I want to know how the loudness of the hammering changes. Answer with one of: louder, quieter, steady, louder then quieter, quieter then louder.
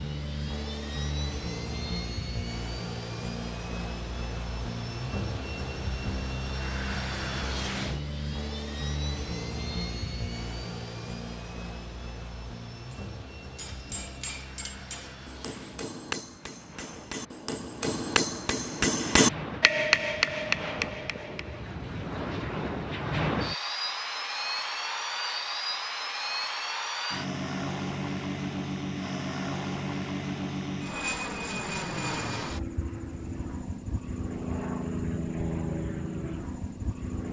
louder.